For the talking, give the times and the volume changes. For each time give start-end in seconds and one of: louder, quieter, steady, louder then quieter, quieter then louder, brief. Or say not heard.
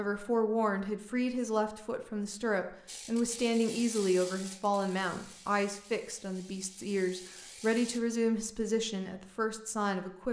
0.0-10.2 steady.